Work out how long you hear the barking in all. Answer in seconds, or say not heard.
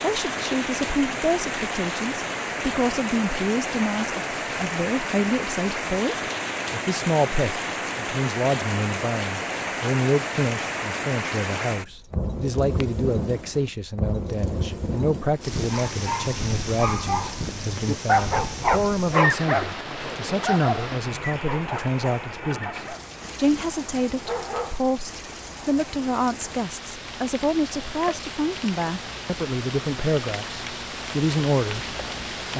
9 s.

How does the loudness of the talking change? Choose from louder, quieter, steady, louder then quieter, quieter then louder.
steady.